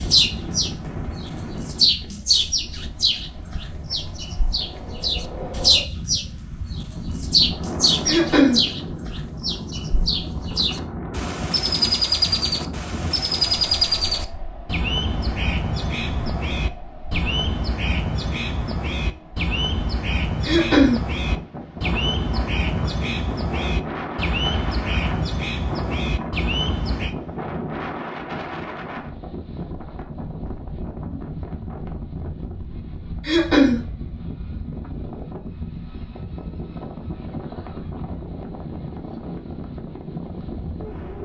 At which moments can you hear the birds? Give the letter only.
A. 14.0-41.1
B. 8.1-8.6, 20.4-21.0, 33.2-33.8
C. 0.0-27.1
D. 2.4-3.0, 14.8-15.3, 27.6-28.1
C.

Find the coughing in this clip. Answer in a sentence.
The coughing can be heard from 8.1 to 8.6 s, from 20.4 to 21.0 s and from 33.2 to 33.8 s.